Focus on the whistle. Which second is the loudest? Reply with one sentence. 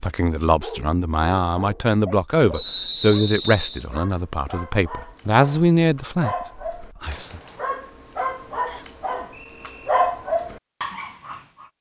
The volume of the whistle peaks at 3 seconds.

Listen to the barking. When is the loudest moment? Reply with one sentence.
The volume of the barking peaks at 10 seconds.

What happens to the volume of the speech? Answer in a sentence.
The loudness of the speech stays about the same.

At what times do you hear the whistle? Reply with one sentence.
You can hear the whistle from 2.5 to 3.9 s and from 8.7 to 9.9 s.